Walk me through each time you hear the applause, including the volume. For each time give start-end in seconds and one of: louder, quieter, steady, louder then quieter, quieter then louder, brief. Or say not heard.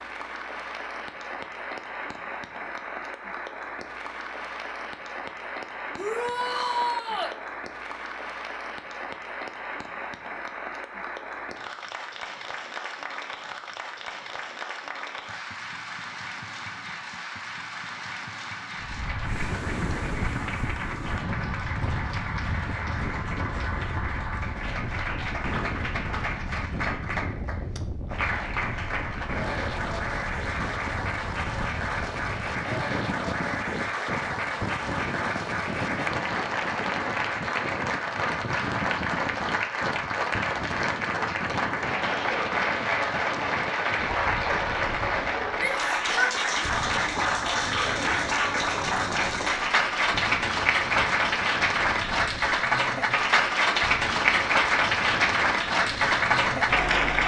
0.0-57.2 louder.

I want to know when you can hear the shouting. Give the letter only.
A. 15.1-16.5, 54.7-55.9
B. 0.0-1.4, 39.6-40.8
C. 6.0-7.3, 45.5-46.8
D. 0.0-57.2
C.